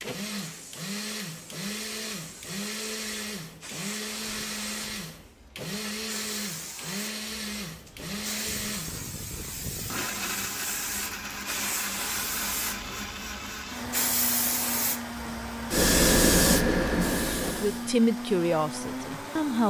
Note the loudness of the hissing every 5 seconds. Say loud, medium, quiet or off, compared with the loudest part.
quiet, quiet, medium, loud.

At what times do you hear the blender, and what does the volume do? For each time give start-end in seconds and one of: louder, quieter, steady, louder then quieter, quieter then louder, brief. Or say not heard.
0.0-19.6 steady.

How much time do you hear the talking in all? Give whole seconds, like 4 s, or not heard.
2 s.